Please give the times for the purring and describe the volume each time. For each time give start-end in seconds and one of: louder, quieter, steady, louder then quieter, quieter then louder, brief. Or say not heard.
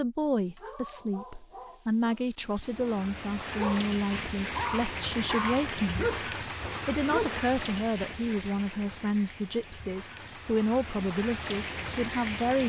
not heard.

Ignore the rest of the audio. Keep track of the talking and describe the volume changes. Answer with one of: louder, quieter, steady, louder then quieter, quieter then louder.
steady.